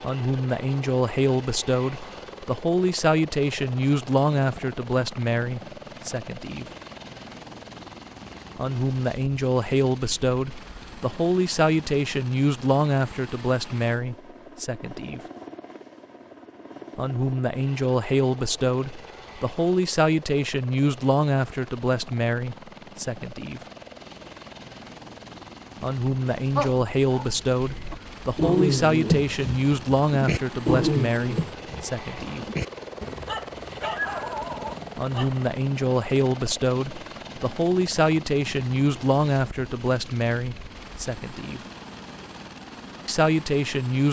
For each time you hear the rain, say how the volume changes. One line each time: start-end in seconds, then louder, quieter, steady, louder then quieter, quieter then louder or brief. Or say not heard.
not heard.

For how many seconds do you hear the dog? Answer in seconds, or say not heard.
9 s.